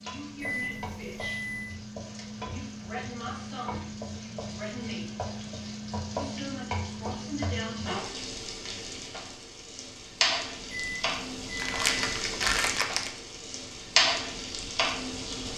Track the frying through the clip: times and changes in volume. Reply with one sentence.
You can hear the frying from 0.0 to 15.5 s, getting louder.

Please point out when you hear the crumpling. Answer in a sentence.
You can hear the crumpling from 11.6 to 13.1 s.